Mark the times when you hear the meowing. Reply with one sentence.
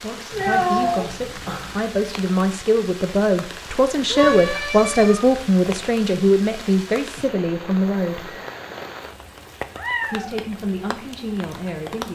You can hear the meowing from 0.3 to 1.8 s, from 4.0 to 5.8 s and from 9.8 to 10.3 s.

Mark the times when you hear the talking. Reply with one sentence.
You can hear the talking from 0.0 to 8.4 s and from 10.1 to 12.1 s.